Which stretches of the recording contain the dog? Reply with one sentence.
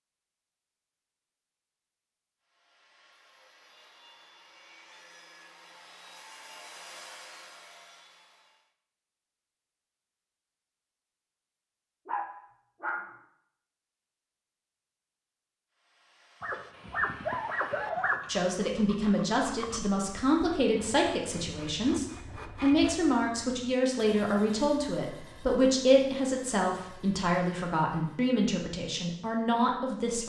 The dog can be heard from 12.1 to 13.2 s and from 16.4 to 18.2 s.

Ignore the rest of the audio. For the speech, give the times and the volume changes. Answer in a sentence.
The speech can be heard from 18.2 to 30.2 s, at a steady volume.